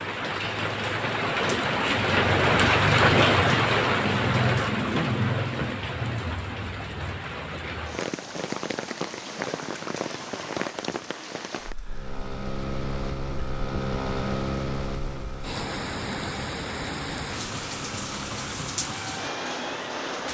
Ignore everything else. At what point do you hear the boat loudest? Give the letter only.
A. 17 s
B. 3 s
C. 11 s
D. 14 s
D.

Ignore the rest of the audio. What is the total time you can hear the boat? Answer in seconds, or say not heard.
8 s.